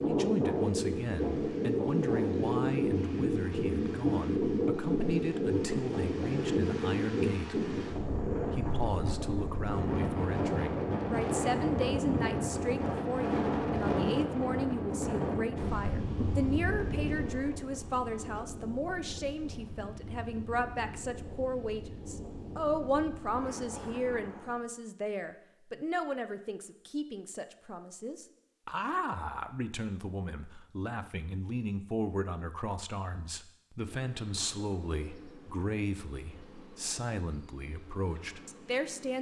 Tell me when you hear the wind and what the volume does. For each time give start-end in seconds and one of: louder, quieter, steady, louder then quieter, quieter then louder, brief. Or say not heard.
0.0-24.6 quieter.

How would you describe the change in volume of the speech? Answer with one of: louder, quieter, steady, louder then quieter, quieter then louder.
steady.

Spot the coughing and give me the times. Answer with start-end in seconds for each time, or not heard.
not heard.